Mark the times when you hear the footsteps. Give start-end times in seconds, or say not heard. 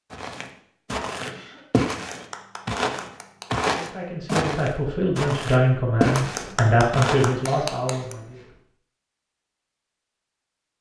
0.1-7.3.